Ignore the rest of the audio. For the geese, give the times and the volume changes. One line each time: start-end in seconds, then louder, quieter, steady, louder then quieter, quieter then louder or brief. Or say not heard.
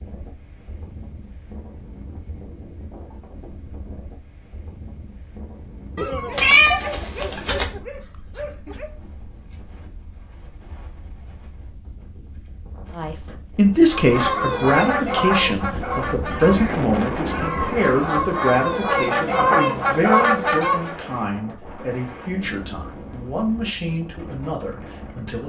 13.9-20.9 quieter then louder.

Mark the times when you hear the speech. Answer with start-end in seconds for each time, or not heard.
12.9-25.4.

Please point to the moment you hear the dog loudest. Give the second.
6 s.